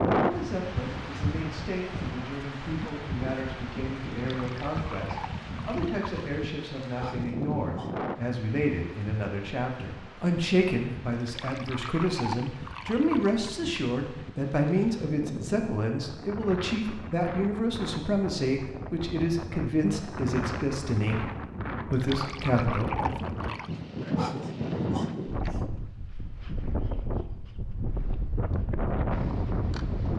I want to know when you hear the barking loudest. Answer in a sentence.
The loudest moment of the barking is at 24 seconds.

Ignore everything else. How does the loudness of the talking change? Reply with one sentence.
The volume of the talking goes up.